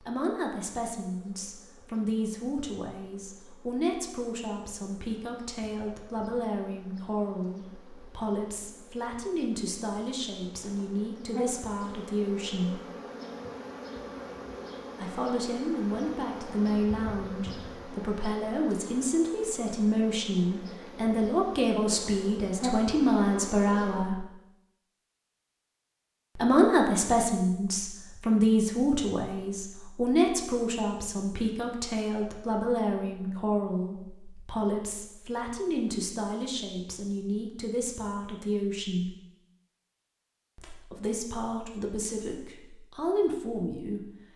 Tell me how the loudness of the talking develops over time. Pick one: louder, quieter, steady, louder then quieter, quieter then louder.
louder then quieter.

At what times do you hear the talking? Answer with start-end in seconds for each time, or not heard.
0.0-12.8, 15.0-24.2, 26.4-39.1, 40.5-44.0.